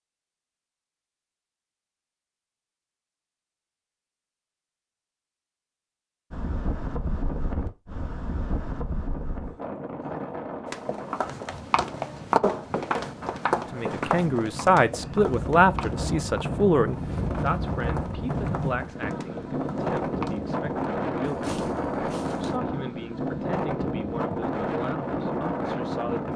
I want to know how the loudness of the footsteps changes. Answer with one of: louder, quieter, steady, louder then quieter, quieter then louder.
quieter.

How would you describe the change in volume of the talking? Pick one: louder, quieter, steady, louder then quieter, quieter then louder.
quieter.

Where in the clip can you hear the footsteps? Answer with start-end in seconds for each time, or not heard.
10.7-22.6.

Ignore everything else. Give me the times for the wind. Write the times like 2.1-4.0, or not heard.
6.3-26.3.